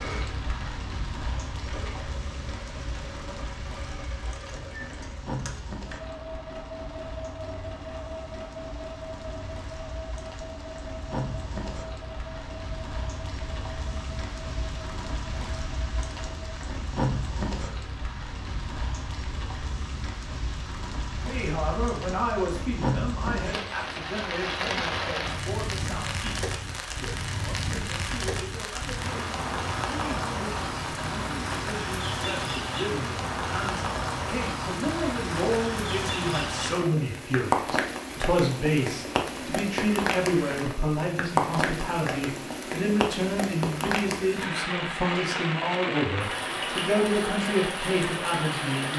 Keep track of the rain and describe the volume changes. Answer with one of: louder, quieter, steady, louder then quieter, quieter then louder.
louder.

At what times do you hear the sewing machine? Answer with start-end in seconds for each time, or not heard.
0.0-16.6.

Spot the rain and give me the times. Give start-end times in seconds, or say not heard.
0.0-48.9.